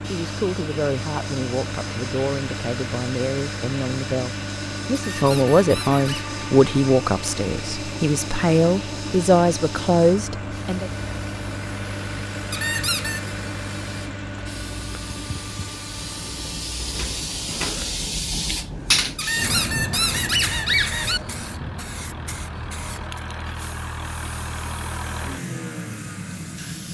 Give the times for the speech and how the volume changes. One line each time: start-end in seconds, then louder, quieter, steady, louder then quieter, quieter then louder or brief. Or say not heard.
0.1-10.9 louder.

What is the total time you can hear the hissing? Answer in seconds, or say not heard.
27 s.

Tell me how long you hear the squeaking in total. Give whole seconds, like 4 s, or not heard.
4 s.